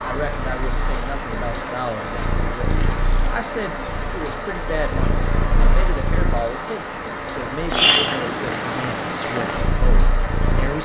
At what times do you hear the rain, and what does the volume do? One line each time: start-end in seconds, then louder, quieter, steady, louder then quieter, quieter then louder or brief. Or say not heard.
0.0-10.8 steady.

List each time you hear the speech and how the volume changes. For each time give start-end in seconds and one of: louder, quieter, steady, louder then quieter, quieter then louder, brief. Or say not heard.
0.0-10.8 steady.